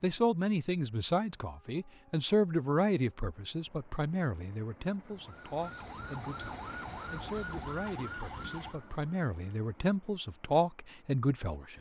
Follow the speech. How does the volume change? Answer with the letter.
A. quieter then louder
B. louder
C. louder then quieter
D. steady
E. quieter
A.